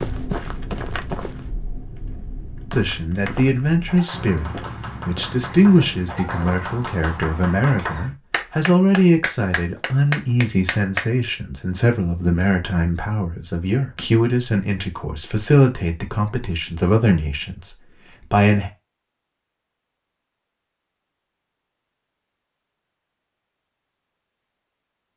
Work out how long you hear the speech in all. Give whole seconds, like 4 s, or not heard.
16 s.